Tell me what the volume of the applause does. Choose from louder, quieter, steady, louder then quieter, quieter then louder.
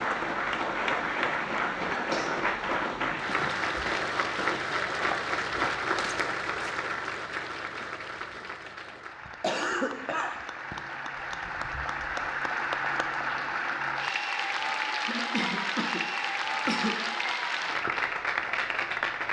quieter then louder.